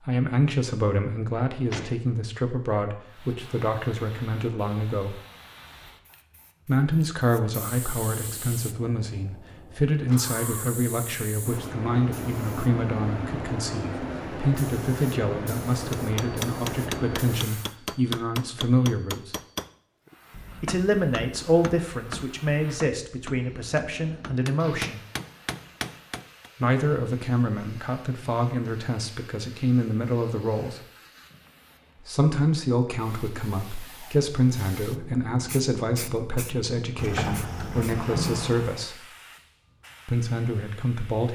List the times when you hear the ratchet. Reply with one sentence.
You can't hear the ratchet here.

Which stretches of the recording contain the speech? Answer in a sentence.
You can hear the speech from 0.1 to 5.2 s, from 6.7 to 19.4 s, from 20.6 to 25.0 s, from 26.6 to 30.8 s, from 32.0 to 39.1 s and from 40.0 to 41.3 s.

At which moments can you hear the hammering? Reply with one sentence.
The hammering can be heard from 15.9 to 26.5 s.